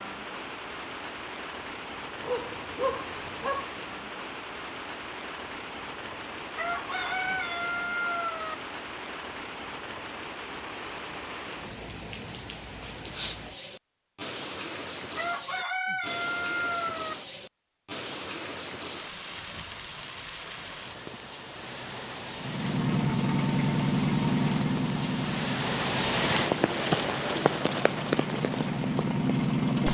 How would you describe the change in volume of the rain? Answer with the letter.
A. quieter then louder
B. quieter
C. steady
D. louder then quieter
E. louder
E.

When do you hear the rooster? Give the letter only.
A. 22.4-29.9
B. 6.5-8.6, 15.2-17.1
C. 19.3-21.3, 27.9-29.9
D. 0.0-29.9
B.